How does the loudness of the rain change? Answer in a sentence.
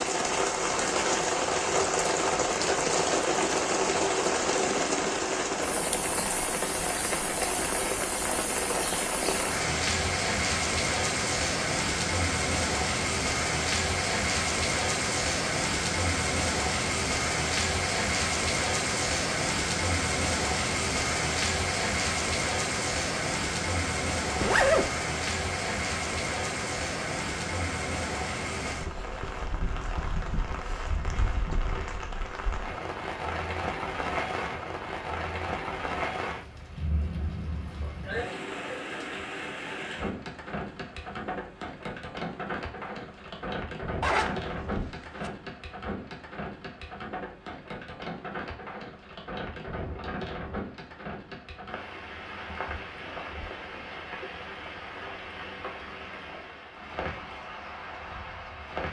The loudness of the rain goes down.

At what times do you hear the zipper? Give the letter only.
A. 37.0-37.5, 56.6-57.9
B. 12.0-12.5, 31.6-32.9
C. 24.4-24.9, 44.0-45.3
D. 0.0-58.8
C.